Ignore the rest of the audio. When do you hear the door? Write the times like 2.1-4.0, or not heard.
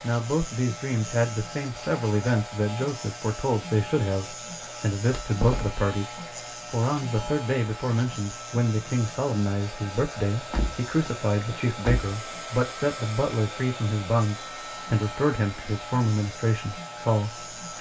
5.1-5.8, 10.3-12.2.